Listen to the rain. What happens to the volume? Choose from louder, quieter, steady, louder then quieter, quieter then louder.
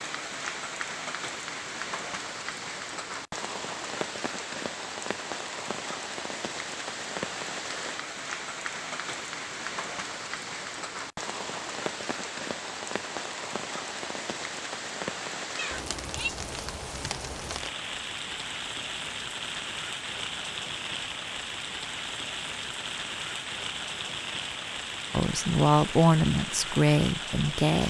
steady.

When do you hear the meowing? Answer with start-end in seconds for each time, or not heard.
15.6-16.3.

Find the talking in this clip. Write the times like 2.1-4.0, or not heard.
25.1-27.8.